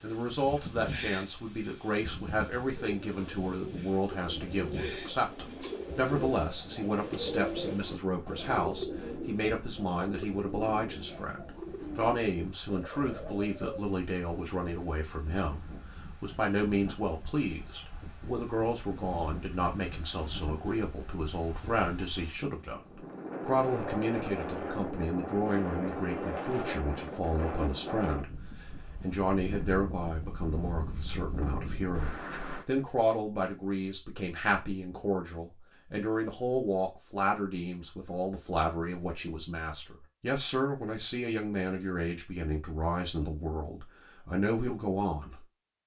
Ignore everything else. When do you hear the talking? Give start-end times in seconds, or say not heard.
0.0-45.8.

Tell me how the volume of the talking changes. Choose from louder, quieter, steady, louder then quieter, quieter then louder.
steady.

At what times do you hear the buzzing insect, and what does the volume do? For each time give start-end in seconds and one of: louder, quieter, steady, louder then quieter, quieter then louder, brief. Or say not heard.
not heard.